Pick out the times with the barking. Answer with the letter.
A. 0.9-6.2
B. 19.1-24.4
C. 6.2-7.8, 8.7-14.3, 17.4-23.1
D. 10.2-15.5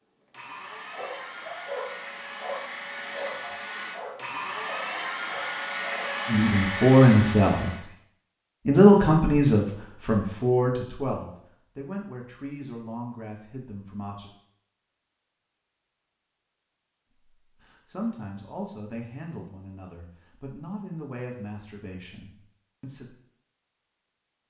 A.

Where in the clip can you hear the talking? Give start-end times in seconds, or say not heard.
6.2-7.8, 8.7-14.3, 17.4-23.1.